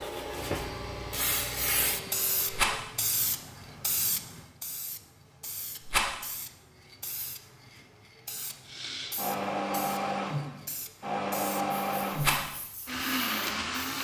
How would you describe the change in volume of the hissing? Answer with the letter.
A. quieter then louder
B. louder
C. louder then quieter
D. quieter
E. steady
D.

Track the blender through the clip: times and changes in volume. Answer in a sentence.
The blender can be heard briefly from 0.0 to 2.8 s; and from 8.7 to 14.0 s, at a steady volume.